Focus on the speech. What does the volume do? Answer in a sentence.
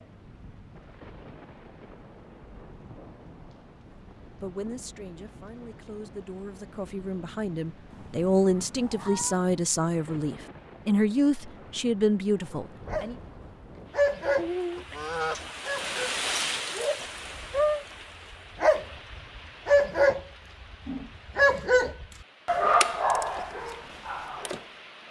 The volume of the speech goes up.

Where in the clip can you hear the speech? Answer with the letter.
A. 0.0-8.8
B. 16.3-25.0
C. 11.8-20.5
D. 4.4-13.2
D.